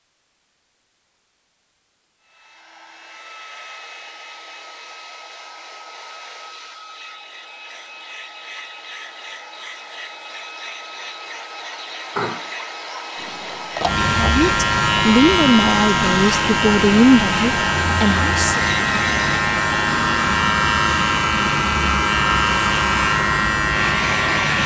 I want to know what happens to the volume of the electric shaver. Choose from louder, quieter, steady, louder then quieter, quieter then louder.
steady.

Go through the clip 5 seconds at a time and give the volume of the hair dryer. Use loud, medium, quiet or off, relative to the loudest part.
quiet, quiet, medium, loud, loud.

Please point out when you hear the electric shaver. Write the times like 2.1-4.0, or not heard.
13.2-24.6.